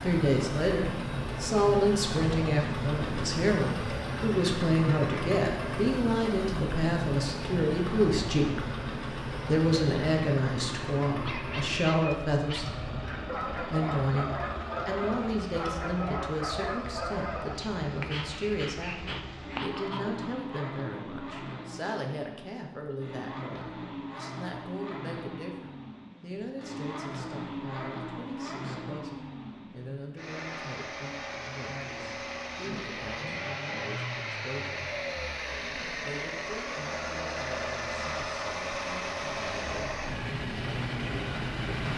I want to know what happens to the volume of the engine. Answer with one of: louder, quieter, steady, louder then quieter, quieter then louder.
quieter then louder.